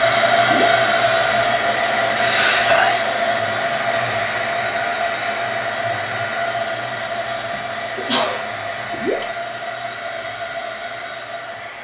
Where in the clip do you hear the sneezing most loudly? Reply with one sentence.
The loudest moment of the sneezing is at 3 seconds.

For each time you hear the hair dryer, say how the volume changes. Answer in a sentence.
The hair dryer can be heard from 0.0 to 11.7 s, getting quieter.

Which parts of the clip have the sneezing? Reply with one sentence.
You can hear the sneezing from 2.1 to 3.0 s and from 7.5 to 8.4 s.